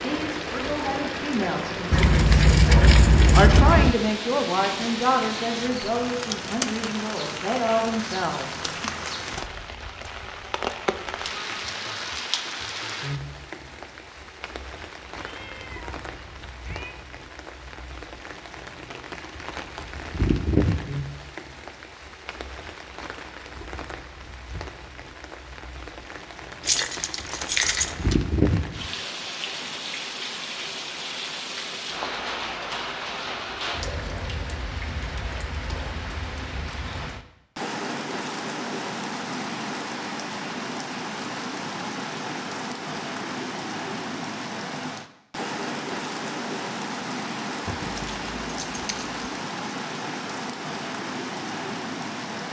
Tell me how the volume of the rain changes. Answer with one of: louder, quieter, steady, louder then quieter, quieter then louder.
steady.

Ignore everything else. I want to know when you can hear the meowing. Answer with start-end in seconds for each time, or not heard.
15.2-16.9.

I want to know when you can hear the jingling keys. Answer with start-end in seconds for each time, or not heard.
1.9-3.9, 26.6-28.1, 47.6-49.0.